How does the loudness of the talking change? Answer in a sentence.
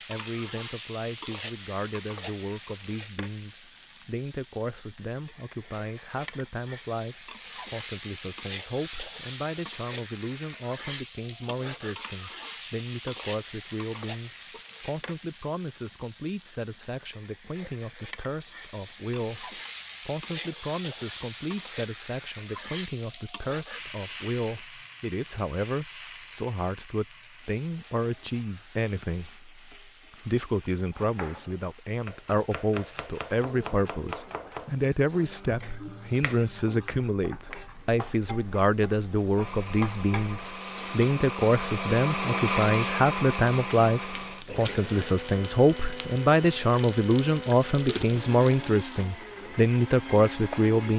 The loudness of the talking goes up.